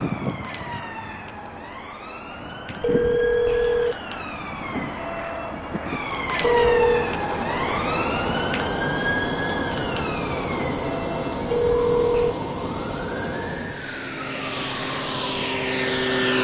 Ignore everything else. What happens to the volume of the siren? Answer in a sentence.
The volume of the siren goes up, then down.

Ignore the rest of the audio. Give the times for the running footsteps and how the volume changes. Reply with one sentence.
You can't hear the running footsteps here.